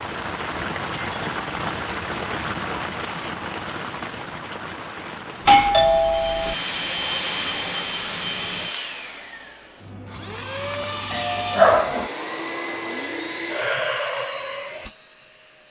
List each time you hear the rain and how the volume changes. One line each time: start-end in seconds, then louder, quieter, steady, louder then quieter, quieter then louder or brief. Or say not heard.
0.0-8.8 quieter.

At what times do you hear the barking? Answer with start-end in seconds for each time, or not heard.
not heard.